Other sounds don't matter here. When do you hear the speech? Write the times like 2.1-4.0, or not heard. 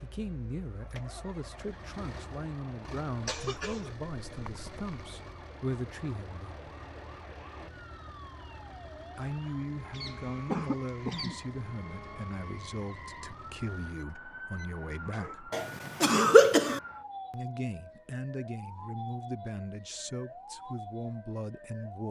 0.0-6.6, 9.2-15.5, 17.3-22.0.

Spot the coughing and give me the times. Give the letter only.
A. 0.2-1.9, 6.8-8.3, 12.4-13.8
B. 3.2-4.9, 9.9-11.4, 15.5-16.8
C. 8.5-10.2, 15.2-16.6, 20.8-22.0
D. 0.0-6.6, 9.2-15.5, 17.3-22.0
B.